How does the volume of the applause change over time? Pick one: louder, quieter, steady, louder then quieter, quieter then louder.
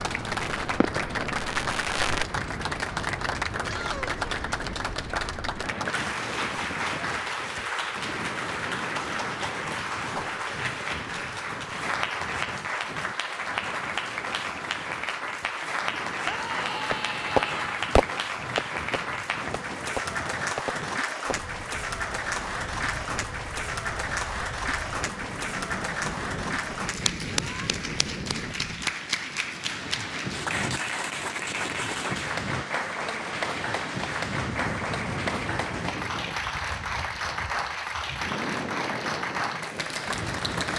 steady.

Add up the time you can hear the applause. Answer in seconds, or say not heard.
41 s.